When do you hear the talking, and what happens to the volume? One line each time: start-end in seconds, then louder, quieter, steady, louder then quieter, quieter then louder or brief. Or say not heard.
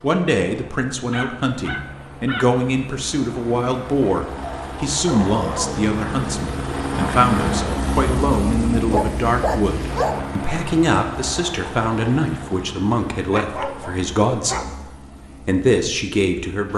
0.0-14.8 steady
15.4-16.7 brief.